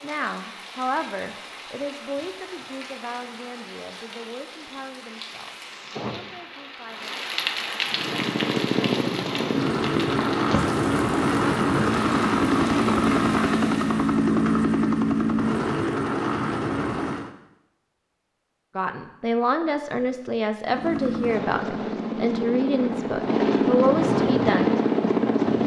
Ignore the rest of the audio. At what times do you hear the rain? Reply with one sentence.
The rain can be heard from 0.0 to 14.2 s.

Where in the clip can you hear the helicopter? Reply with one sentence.
You can hear the helicopter from 7.8 to 17.3 s and from 20.6 to 25.6 s.